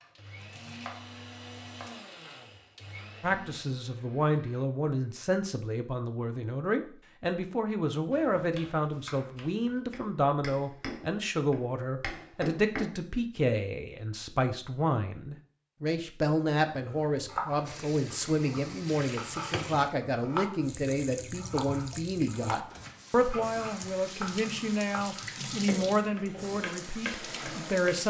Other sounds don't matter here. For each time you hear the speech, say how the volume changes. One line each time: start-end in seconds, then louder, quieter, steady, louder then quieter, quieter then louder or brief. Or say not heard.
3.2-28.0 steady.